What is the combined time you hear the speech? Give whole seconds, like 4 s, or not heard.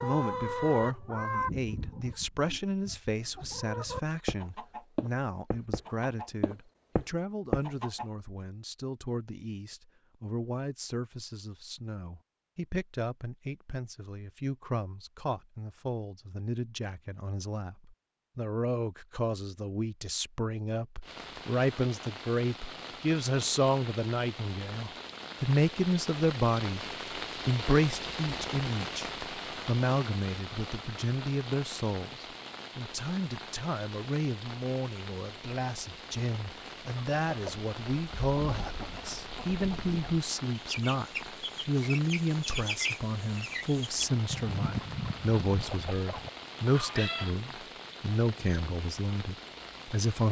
50 s.